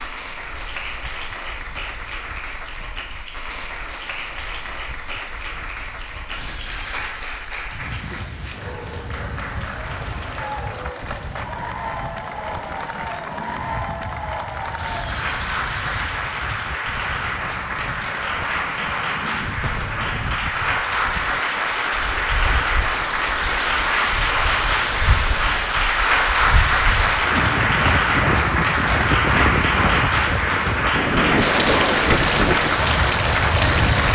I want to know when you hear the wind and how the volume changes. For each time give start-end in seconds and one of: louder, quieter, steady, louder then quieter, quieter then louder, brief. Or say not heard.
0.0-34.1 louder.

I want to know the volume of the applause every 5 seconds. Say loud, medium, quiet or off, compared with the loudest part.
quiet, quiet, medium, medium, loud, loud, loud.